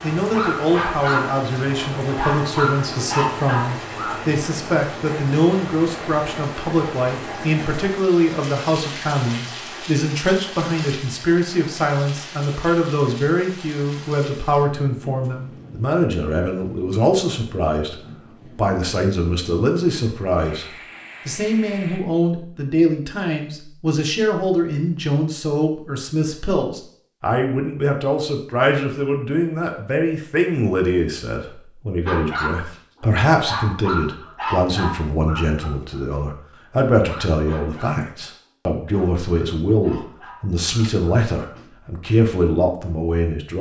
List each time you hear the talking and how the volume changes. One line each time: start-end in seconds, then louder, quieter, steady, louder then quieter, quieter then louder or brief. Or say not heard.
0.0-43.5 steady.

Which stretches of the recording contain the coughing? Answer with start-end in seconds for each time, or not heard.
not heard.